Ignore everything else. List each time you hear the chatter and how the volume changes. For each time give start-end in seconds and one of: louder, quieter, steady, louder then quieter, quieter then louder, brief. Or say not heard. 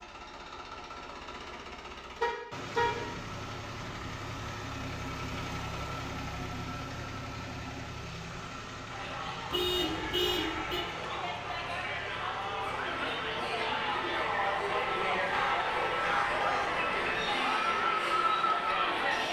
8.8-19.2 louder.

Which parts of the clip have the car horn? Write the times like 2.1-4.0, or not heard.
2.2-3.0, 9.5-10.8, 15.3-16.8.